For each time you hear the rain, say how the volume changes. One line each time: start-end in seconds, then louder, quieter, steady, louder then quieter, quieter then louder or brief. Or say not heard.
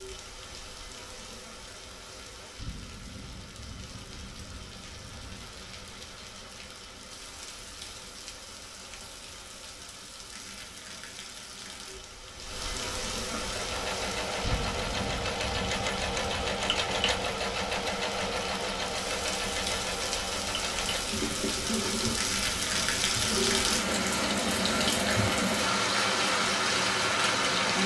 0.0-27.8 louder.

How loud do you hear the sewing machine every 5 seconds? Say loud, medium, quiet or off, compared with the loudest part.
off, off, loud, loud, loud, medium.